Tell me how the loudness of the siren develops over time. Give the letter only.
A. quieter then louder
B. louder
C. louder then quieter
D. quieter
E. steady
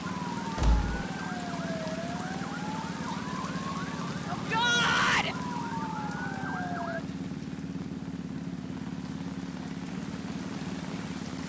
E.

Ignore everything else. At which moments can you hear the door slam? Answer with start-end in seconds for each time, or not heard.
0.6-1.1.